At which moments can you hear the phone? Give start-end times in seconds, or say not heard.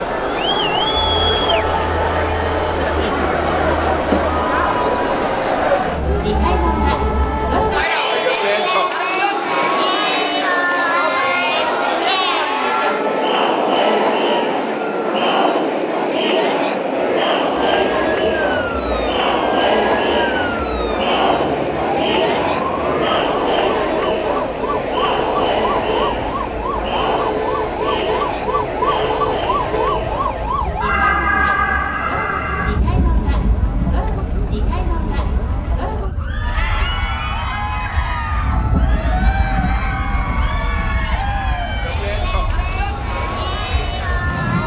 not heard.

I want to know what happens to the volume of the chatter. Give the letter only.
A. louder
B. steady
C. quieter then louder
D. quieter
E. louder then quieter
D.